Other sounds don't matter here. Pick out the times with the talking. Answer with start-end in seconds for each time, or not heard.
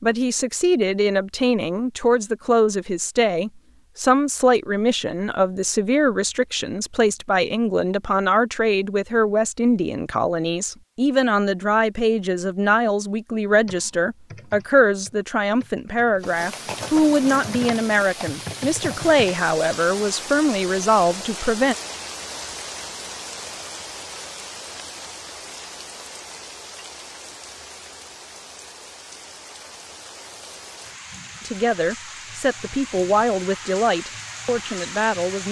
0.0-21.8, 31.4-35.4.